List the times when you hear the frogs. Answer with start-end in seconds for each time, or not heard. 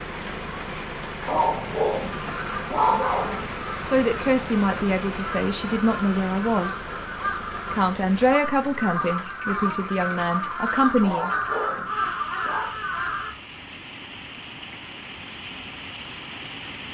not heard.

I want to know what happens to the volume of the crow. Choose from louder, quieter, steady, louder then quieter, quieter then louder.
louder.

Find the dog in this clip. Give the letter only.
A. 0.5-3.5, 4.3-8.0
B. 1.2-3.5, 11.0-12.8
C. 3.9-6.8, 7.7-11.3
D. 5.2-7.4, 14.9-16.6
B.